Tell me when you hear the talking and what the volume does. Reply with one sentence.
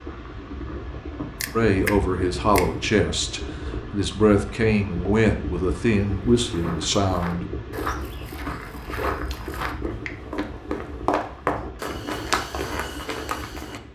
The talking can be heard from 1.6 to 7.5 s, getting quieter then louder.